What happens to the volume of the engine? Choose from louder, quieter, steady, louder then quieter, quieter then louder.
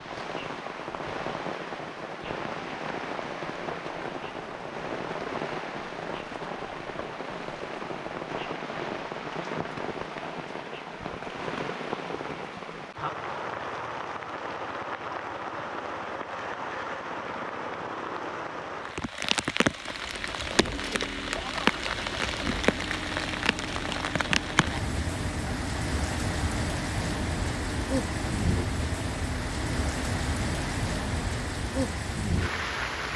steady.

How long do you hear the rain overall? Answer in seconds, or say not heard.
33 s.